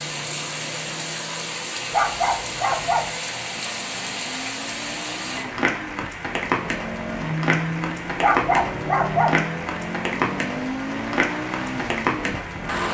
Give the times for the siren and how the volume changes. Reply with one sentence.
The siren can't be heard in this clip.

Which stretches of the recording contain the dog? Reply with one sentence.
You can hear the dog from 1.9 to 3.1 s and from 8.2 to 9.4 s.